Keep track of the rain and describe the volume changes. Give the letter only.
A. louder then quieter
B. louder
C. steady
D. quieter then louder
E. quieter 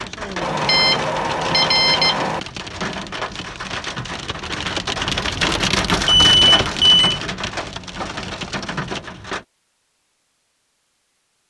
A.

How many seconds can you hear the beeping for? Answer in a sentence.
You can hear the beeping for 3 seconds altogether.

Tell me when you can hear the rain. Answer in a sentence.
You can hear the rain from 0.0 to 9.4 s.